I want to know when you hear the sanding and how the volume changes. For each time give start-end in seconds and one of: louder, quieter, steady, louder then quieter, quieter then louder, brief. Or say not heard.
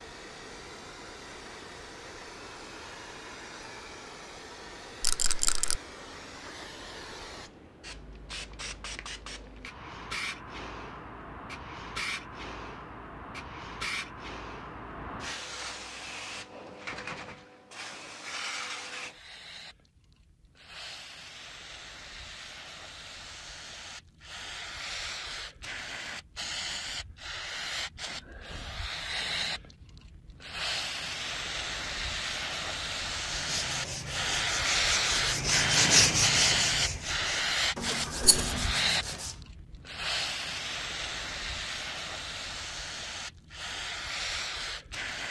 33.2-39.4 louder then quieter.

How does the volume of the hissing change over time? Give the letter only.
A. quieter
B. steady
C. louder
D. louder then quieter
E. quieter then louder
C.